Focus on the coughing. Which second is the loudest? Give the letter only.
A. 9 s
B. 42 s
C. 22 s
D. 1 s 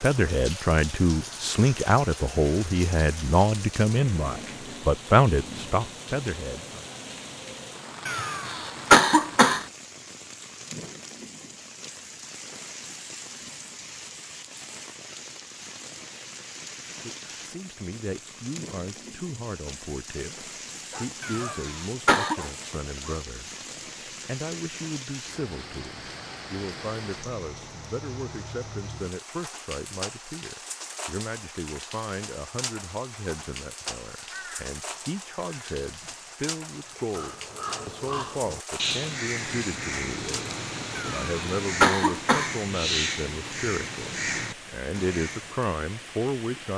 A.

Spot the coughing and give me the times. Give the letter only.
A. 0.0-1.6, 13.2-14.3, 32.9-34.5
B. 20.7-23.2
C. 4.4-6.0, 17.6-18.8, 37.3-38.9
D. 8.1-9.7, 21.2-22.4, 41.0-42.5
D.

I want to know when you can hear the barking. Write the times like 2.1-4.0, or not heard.
20.7-23.2.